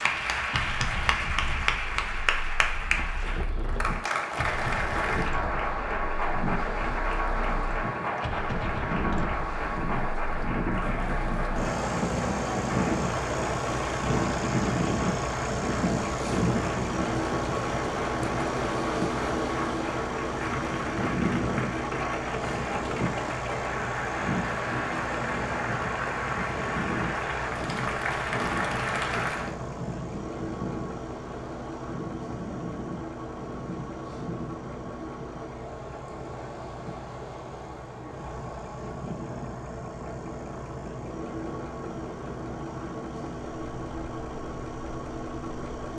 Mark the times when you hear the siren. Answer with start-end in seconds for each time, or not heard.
not heard.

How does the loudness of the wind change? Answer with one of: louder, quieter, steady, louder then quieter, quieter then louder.
louder then quieter.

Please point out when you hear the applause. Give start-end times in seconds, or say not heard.
0.0-29.6.